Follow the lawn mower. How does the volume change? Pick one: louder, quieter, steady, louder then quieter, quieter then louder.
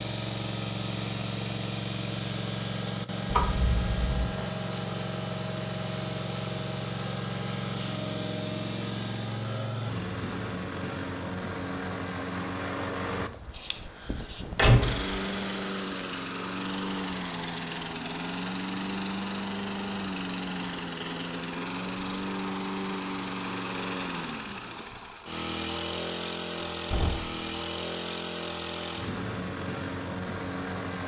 steady.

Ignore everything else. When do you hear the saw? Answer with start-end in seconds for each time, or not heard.
not heard.